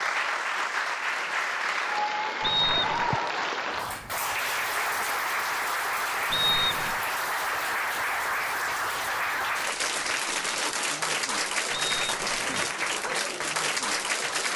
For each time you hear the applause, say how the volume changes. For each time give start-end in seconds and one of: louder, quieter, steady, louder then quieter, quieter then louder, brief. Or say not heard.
0.0-14.5 steady.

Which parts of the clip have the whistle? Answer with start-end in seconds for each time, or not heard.
2.4-3.0, 6.3-7.0, 11.7-12.7.